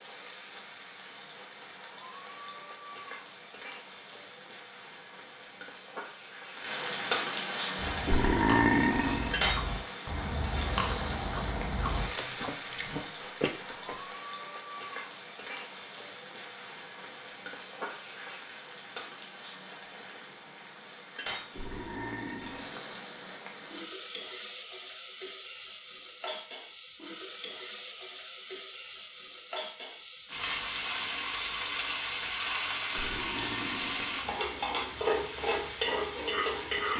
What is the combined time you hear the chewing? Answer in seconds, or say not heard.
6 s.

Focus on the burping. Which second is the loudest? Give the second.
9 s.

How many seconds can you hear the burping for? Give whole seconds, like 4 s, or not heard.
4 s.